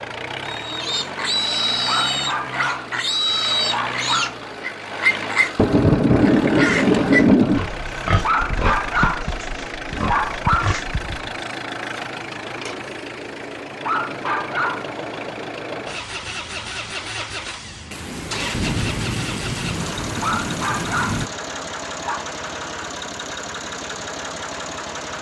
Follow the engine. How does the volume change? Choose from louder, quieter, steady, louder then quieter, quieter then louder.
steady.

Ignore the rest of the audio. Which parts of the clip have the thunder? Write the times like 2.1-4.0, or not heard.
5.5-7.6, 17.9-21.3.